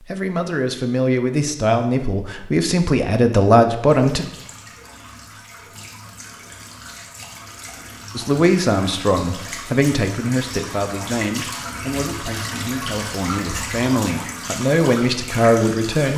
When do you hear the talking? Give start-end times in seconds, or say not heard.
0.1-4.2, 8.2-16.1.